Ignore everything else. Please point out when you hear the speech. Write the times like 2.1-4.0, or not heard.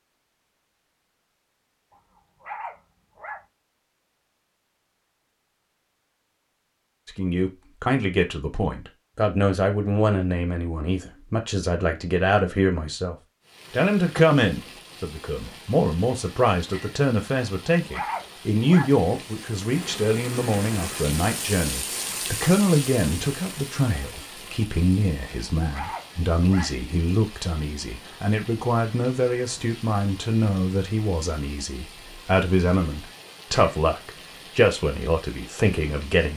7.0-36.3.